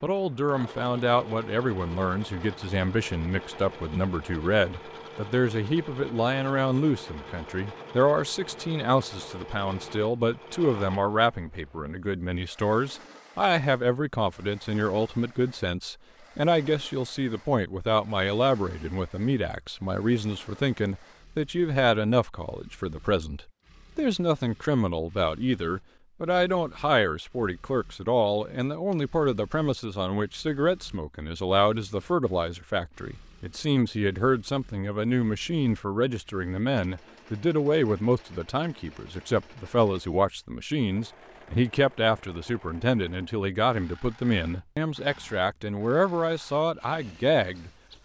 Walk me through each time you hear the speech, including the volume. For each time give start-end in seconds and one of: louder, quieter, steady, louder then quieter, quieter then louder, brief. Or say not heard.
0.0-47.7 steady.